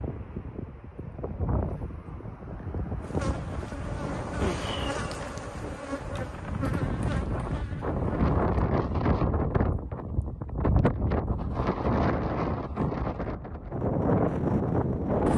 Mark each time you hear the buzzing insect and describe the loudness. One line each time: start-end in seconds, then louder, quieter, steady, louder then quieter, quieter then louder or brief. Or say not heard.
3.0-8.4 louder then quieter.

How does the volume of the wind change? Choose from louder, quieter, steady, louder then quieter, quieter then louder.
louder.